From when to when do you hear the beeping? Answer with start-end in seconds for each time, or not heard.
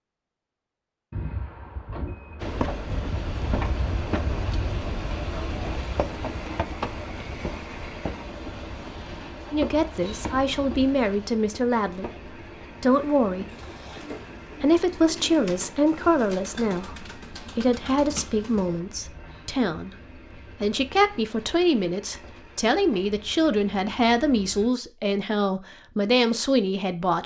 1.1-2.6.